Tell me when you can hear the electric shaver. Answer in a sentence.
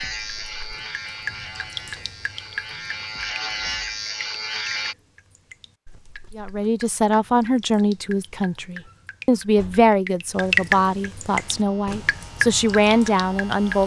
You can hear the electric shaver from 0.0 to 5.0 s and from 11.2 to 13.8 s.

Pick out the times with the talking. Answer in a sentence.
You can hear the talking from 6.3 to 13.8 s.